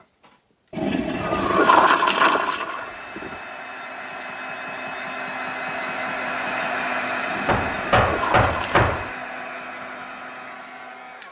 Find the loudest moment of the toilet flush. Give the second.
2 s.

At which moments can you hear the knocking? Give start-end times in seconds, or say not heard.
7.5-9.1.